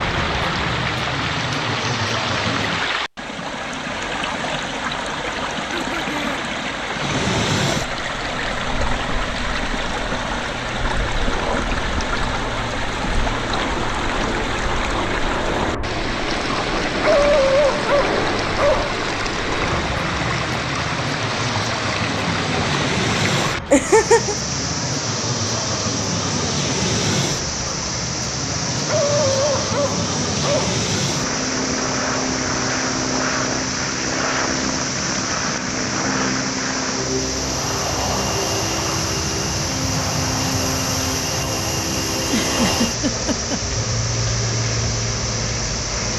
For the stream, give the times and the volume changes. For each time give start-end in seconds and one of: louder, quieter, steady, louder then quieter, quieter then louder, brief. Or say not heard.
0.0-46.1 steady.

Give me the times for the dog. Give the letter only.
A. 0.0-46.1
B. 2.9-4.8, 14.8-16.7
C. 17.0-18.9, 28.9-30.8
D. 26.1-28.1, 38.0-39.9
C.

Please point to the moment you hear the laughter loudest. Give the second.
24 s.